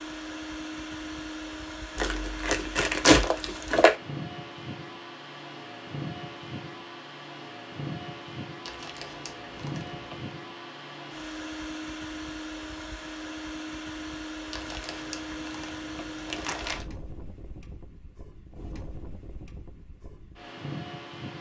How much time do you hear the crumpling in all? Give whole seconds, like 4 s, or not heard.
6 s.